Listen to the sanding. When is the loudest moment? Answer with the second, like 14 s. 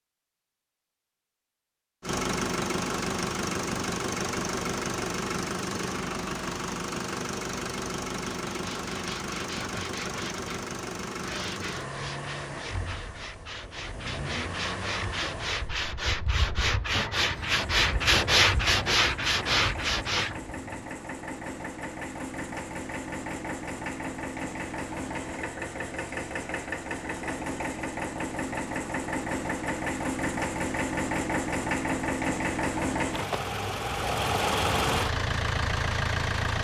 18 s.